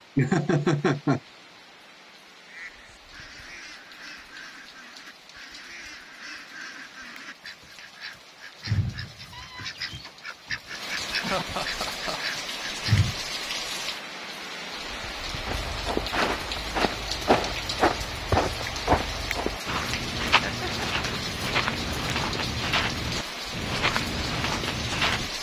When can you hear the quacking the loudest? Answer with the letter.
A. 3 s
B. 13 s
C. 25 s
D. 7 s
B.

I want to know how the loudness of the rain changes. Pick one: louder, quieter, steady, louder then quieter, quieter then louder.
louder.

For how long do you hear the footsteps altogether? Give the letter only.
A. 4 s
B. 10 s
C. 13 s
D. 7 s
B.